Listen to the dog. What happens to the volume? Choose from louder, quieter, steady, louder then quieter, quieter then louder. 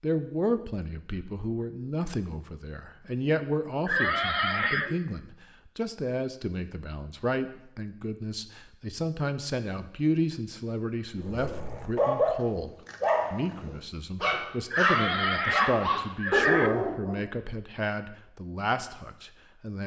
steady.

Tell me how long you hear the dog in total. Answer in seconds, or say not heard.
6 s.